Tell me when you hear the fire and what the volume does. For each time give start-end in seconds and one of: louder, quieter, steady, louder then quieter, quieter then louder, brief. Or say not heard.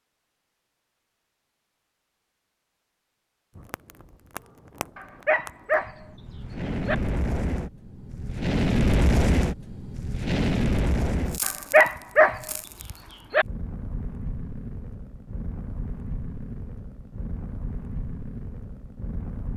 3.5-19.5 louder then quieter.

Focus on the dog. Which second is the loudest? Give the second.
12 s.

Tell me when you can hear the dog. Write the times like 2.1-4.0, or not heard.
5.0-7.0, 11.4-13.4.